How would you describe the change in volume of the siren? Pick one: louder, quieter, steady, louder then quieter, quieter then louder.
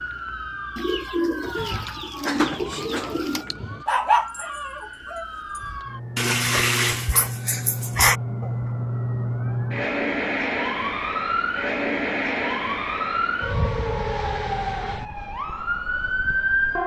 louder.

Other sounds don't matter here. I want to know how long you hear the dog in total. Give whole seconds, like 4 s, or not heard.
7 s.